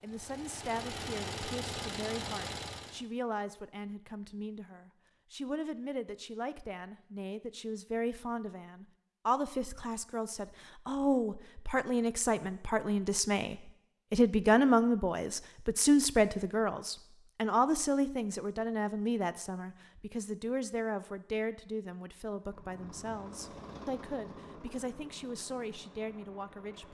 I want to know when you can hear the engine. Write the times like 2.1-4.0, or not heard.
0.0-3.0, 22.4-26.8.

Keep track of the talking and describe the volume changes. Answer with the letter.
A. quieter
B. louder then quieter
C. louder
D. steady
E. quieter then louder
B.